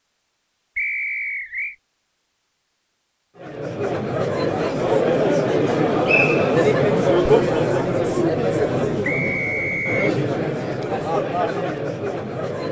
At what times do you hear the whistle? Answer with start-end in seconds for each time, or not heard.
0.8-1.8, 6.0-6.5, 9.0-10.1.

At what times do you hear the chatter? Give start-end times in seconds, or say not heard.
3.4-12.6.